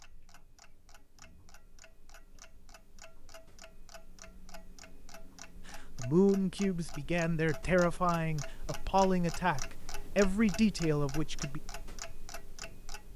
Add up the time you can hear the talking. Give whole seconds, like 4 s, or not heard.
6 s.